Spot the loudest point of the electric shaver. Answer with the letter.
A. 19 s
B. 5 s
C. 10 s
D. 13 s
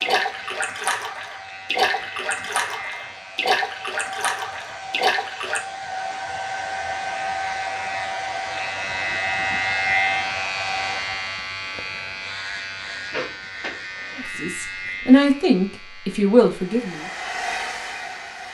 C.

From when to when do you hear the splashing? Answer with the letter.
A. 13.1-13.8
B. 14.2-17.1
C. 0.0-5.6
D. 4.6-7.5
C.